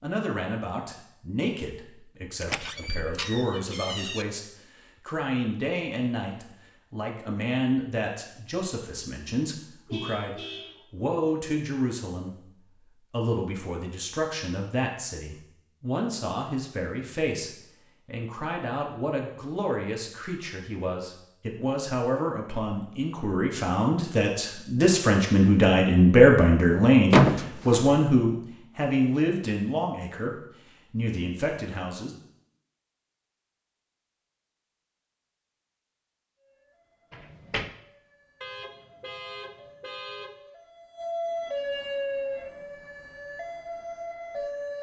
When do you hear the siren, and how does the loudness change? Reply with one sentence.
The siren can be heard from 36.4 to 44.7 s, getting louder then quieter.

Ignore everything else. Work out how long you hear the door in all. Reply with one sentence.
The door can be heard for 3 seconds in total.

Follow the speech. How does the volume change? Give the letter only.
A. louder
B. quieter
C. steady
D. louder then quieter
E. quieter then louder
A.